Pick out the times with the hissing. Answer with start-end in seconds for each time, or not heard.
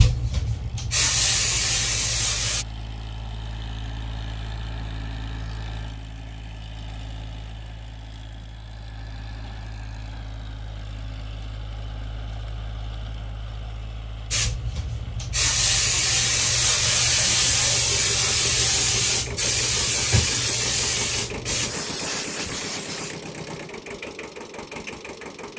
0.0-2.6, 14.3-23.1.